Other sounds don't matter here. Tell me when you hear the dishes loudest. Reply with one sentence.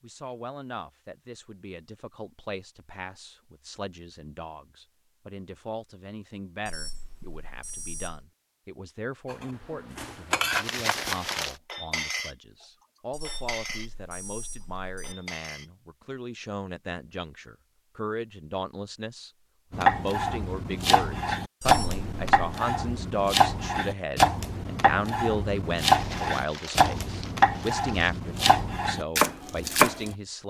The volume of the dishes peaks at 10 seconds.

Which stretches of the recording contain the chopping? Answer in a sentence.
You can hear the chopping from 19.7 to 30.1 s.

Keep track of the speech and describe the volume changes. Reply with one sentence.
The volume of the speech goes up.